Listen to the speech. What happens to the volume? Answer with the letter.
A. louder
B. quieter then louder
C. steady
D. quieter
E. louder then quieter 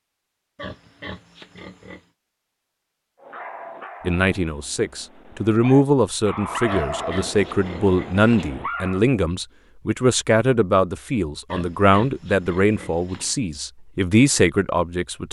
C.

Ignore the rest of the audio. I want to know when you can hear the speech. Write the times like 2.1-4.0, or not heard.
4.0-15.2.